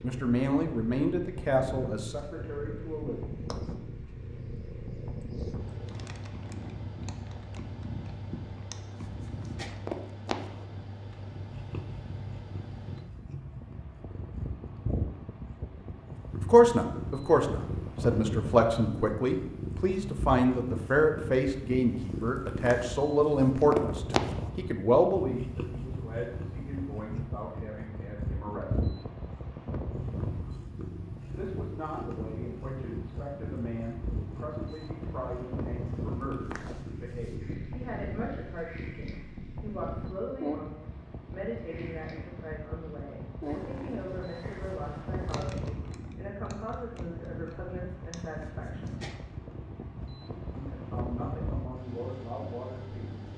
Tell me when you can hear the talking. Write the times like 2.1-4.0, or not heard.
0.0-3.2, 16.4-28.9, 31.4-49.0, 50.5-53.3.